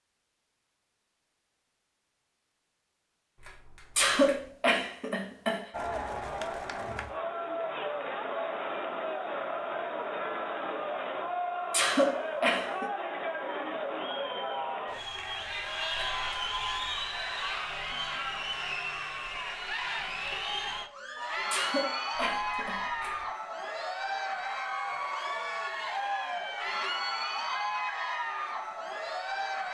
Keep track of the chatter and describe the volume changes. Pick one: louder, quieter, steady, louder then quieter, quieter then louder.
steady.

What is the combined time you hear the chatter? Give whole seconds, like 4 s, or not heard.
24 s.